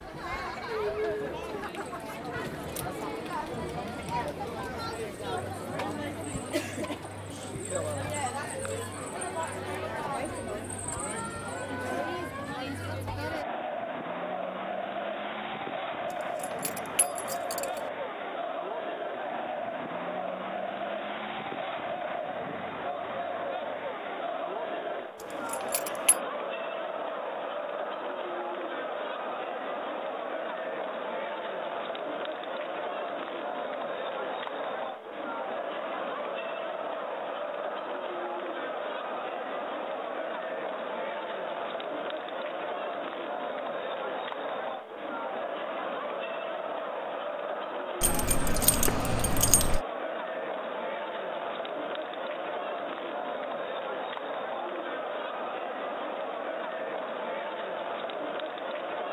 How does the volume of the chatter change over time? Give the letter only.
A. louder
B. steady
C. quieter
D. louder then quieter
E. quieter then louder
B.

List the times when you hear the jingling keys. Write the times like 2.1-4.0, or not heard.
16.1-17.8, 25.2-26.1, 48.0-49.8.